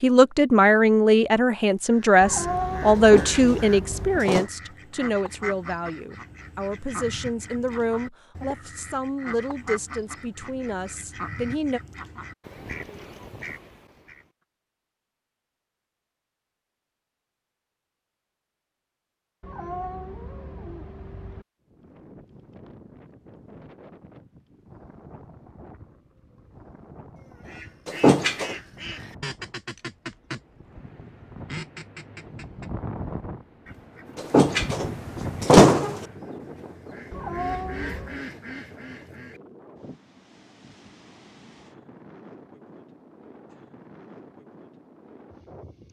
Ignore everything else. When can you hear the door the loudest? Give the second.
36 s.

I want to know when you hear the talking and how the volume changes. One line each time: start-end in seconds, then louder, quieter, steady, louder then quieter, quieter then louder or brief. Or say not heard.
0.0-11.8 quieter.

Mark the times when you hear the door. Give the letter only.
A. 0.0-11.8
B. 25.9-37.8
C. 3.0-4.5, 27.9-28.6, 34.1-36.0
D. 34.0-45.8
C.